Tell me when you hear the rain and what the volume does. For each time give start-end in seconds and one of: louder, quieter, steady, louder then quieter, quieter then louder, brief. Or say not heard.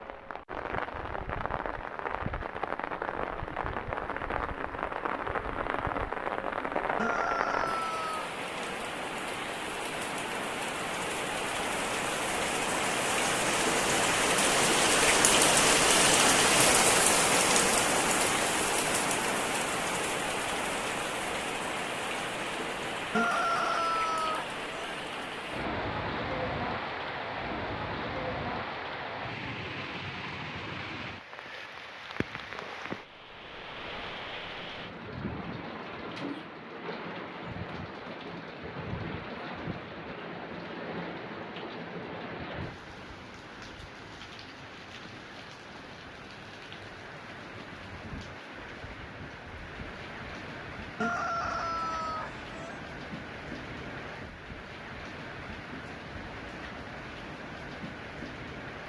0.0-58.8 louder then quieter.